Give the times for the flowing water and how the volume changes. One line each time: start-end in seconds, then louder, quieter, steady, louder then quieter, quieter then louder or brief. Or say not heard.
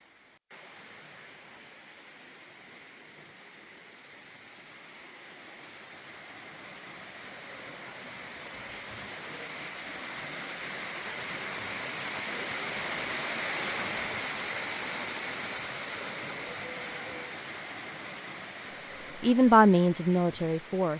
0.0-20.9 louder then quieter.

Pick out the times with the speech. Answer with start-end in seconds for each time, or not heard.
19.2-20.9.